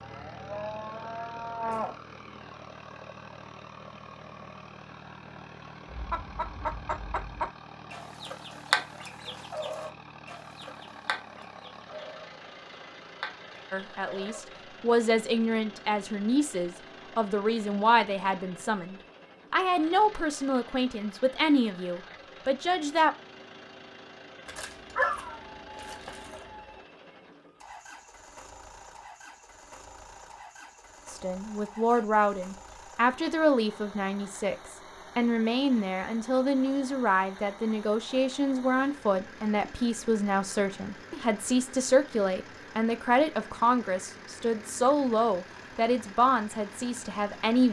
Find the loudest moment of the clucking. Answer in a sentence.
The loudest moment of the clucking is at 9 seconds.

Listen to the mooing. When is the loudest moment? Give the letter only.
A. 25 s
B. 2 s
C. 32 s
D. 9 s
B.